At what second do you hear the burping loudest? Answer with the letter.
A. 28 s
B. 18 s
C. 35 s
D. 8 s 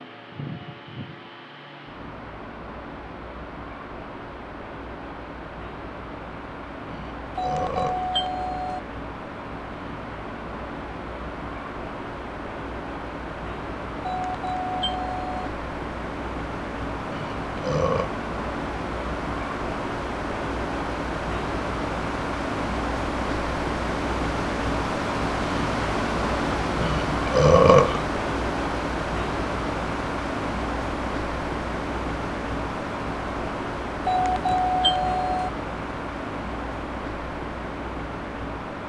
A.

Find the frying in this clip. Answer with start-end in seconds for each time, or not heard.
not heard.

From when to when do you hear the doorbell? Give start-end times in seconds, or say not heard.
7.3-8.8, 14.0-15.5, 34.0-35.5.